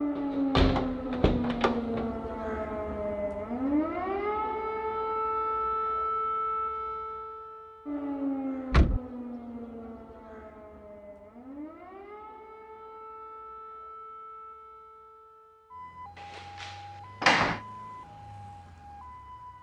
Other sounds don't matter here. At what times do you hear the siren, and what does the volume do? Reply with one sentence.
You can hear the siren from 0.0 to 19.5 s, getting quieter.